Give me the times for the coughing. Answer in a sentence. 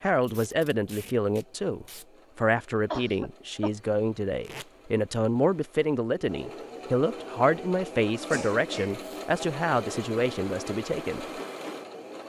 You can hear the coughing from 2.9 to 3.7 s and from 8.3 to 9.1 s.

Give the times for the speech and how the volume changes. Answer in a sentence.
You can hear the speech from 0.0 to 11.2 s, at a steady volume.